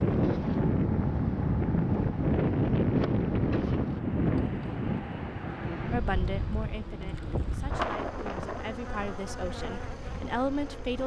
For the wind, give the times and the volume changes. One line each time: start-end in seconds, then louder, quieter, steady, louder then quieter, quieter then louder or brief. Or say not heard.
0.0-8.8 quieter.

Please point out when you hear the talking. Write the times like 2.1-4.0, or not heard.
5.9-11.0.